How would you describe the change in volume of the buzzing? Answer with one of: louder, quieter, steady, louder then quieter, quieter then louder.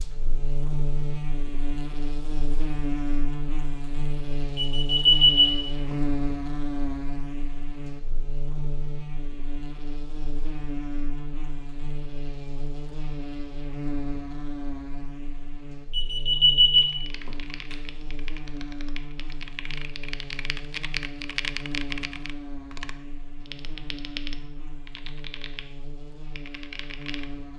quieter.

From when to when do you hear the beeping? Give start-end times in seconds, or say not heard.
4.5-6.0, 15.9-17.8.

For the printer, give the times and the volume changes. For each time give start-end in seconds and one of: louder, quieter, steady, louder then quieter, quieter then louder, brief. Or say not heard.
not heard.